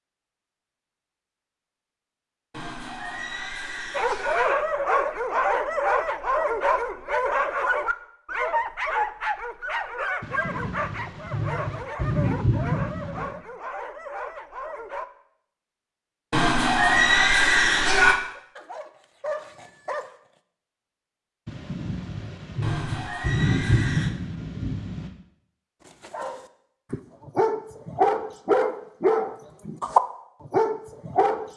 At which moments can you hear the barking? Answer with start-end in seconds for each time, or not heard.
3.9-15.1, 18.3-20.4, 26.1-31.5.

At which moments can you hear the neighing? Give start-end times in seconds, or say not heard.
2.5-4.5, 16.3-18.2, 22.6-24.1.